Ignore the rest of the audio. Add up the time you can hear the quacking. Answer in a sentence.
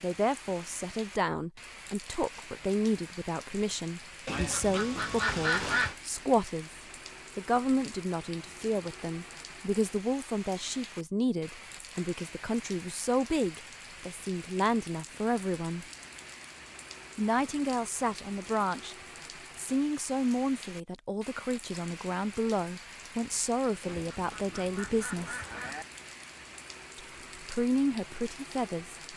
The quacking can be heard for 4 seconds in total.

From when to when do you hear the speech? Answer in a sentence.
The speech can be heard from 0.0 to 15.8 s, from 17.1 to 18.9 s, from 19.6 to 25.4 s and from 26.9 to 28.9 s.